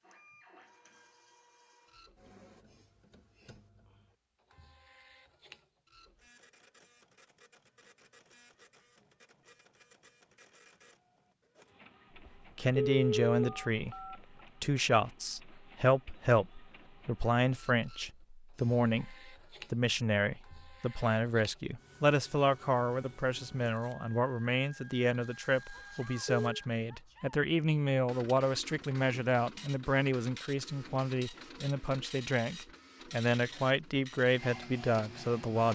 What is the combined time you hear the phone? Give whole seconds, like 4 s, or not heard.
3 s.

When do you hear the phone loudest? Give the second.
13 s.